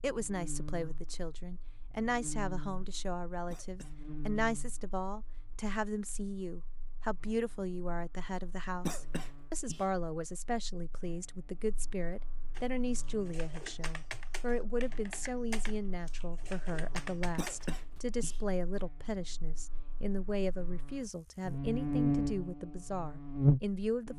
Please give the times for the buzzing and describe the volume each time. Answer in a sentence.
The buzzing can be heard from 0.0 to 24.1 s, getting quieter then louder.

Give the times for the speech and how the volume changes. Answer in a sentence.
The speech can be heard from 0.0 to 24.1 s, at a steady volume.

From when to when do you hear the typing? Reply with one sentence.
The typing can be heard from 12.6 to 18.0 s.